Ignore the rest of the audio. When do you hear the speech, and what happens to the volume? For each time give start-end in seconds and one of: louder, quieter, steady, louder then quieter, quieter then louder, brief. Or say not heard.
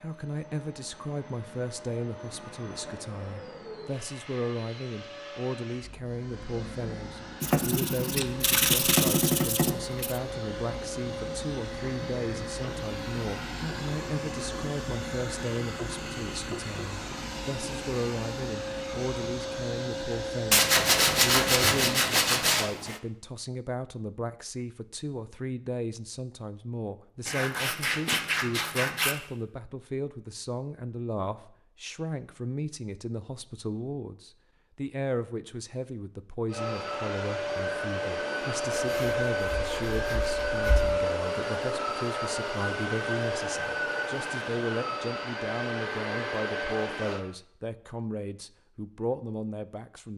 0.0-50.1 steady.